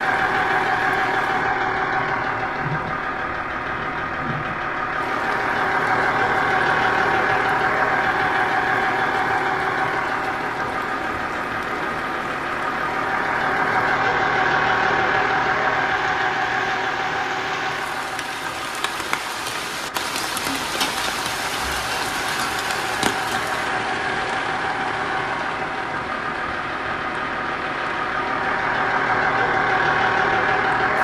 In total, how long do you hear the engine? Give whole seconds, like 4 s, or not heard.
31 s.